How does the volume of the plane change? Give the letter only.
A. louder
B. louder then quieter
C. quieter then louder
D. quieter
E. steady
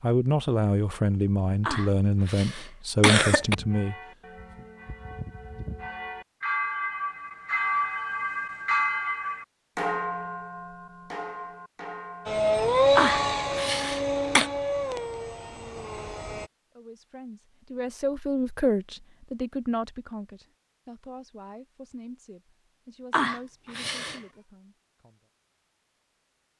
D.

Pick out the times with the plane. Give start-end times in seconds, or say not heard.
12.2-16.5.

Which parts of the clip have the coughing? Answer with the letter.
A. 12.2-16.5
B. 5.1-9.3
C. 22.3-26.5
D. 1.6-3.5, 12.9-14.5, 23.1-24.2
D.